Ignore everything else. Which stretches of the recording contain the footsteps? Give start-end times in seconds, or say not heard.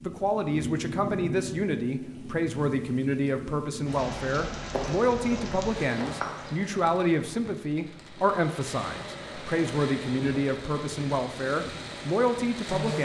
4.7-6.5.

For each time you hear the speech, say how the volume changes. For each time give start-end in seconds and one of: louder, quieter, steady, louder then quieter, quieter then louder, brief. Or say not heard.
0.0-13.0 steady.